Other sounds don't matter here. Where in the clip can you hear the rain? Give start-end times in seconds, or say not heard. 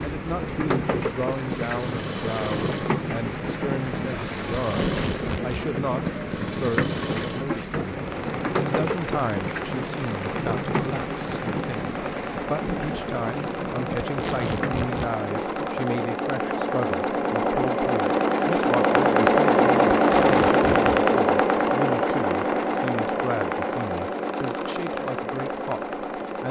0.0-15.8.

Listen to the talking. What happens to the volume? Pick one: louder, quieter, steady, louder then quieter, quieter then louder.
steady.